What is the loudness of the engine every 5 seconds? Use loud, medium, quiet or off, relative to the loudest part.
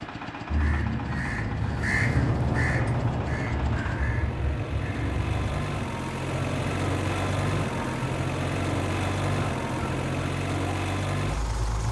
medium, loud, loud.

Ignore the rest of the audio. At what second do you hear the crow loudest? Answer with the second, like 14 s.
2 s.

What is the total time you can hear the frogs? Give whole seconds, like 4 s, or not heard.
not heard.